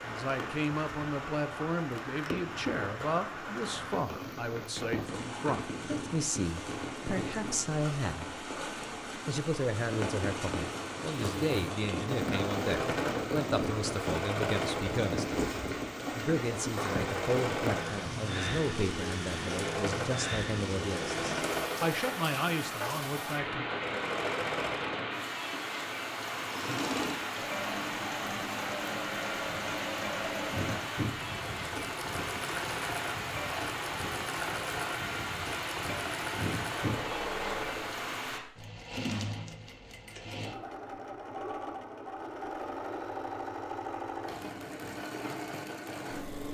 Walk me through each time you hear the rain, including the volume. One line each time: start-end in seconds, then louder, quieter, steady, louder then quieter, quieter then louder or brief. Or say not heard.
0.0-38.4 steady.